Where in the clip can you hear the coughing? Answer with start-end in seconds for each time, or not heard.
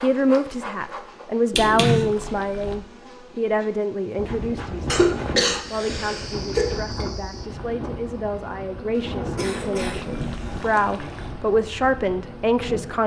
1.5-2.1, 4.8-7.0, 8.9-10.9.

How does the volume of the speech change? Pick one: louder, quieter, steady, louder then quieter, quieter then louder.
quieter then louder.